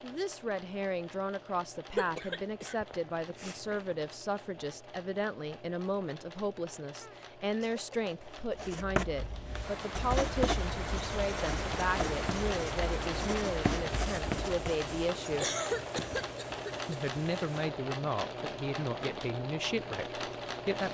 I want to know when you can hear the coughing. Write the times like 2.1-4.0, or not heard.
1.9-4.0, 7.0-8.8, 15.2-17.0.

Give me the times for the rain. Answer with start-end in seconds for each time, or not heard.
9.6-20.8.